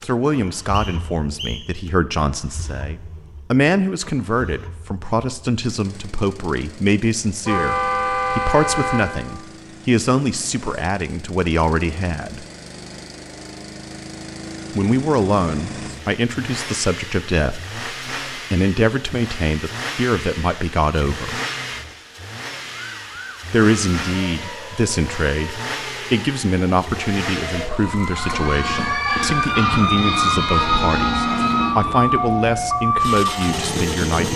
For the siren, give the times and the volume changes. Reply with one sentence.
The siren can be heard from 22.9 to 34.3 s, getting louder.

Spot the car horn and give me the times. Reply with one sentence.
You can hear the car horn from 7.5 to 9.1 s and from 30.8 to 31.4 s.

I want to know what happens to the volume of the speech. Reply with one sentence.
The loudness of the speech stays about the same.